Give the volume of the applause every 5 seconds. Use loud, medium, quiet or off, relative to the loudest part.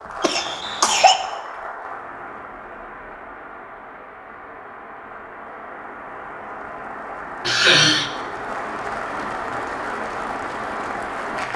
medium, loud, loud.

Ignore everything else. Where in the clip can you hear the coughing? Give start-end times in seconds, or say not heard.
0.2-1.1, 7.5-8.1.